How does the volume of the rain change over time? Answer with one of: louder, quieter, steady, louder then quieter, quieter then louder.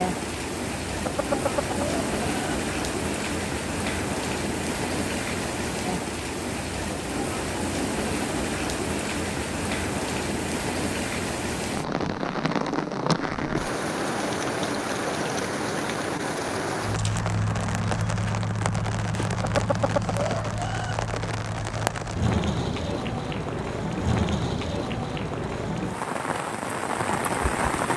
steady.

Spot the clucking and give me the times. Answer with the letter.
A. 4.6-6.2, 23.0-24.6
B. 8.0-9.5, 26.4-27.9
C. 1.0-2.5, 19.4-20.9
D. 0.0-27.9
C.